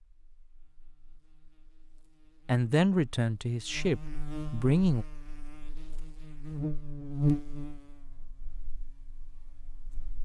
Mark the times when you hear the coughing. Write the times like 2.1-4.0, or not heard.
not heard.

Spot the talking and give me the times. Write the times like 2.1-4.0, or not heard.
2.5-5.0.